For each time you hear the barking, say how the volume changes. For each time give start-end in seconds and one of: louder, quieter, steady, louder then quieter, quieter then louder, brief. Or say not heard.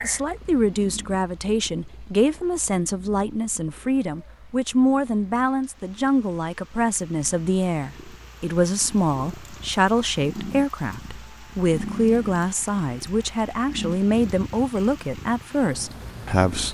not heard.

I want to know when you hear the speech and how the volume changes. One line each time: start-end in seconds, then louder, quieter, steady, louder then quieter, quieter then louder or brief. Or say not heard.
0.0-16.6 steady.